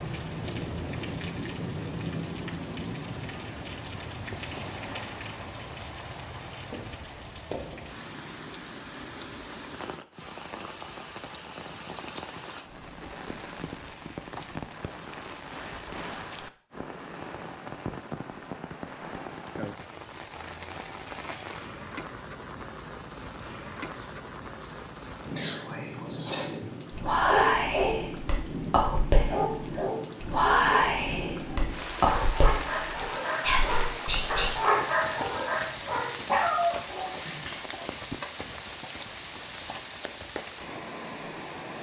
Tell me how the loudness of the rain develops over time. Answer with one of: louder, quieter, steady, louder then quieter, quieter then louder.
steady.